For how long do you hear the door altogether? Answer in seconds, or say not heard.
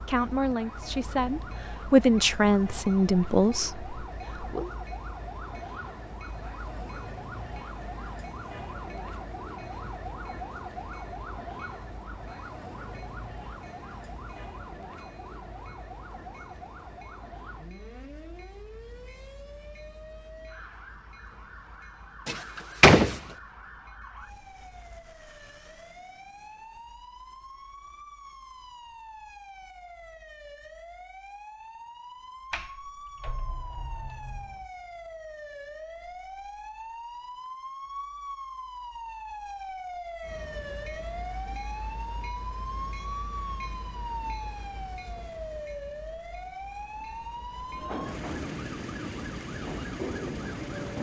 3 s.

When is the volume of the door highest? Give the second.
23 s.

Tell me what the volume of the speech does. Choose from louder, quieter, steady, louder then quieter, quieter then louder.
louder then quieter.